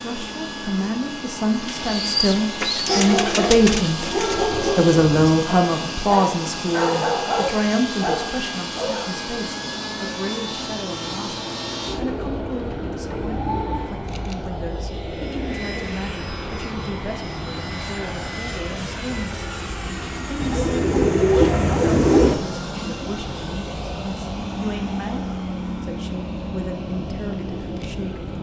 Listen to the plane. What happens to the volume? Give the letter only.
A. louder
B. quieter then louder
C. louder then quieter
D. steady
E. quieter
D.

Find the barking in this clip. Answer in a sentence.
You can hear the barking from 2.9 to 9.1 s.